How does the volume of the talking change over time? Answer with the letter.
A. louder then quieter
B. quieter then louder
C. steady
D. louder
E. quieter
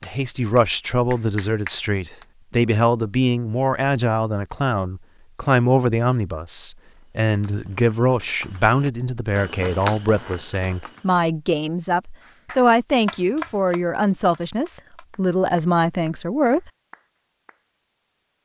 C.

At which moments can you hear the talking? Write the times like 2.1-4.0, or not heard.
0.0-16.7.